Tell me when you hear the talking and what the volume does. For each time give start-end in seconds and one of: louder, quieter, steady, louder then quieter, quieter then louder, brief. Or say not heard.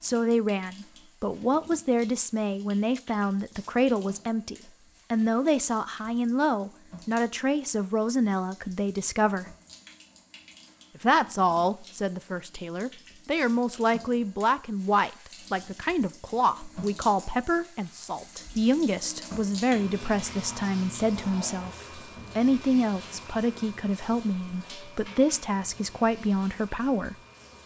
0.0-9.4 steady
10.9-27.1 steady.